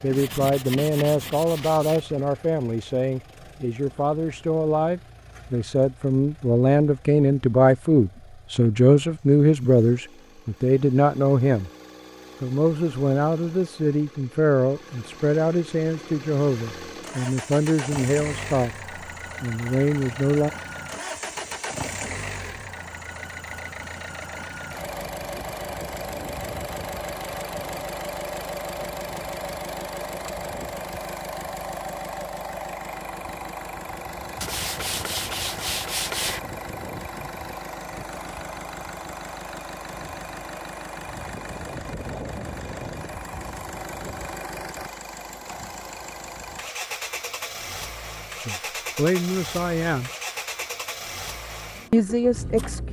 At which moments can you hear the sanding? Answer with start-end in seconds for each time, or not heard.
0.1-2.0, 34.4-36.4.